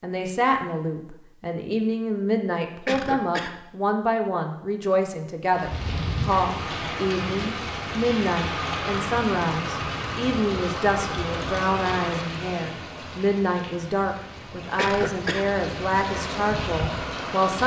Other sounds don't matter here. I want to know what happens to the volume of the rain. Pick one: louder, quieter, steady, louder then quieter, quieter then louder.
quieter then louder.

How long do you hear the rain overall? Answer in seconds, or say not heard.
12 s.